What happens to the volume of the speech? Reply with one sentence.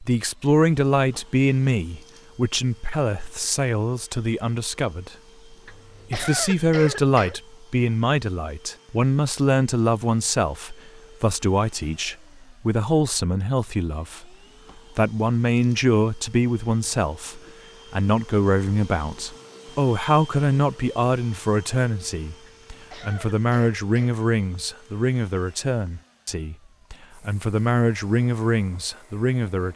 The volume of the speech stays about the same.